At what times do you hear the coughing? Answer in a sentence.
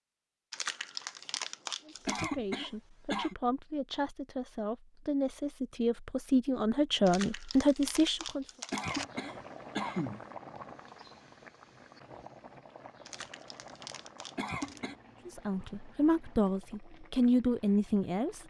You can hear the coughing from 2.0 to 3.4 s, from 8.7 to 10.2 s and from 14.3 to 14.9 s.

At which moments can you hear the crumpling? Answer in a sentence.
The crumpling can be heard from 0.5 to 2.3 s, from 7.0 to 9.1 s and from 13.1 to 14.8 s.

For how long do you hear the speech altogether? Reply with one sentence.
The speech can be heard for 10 seconds in total.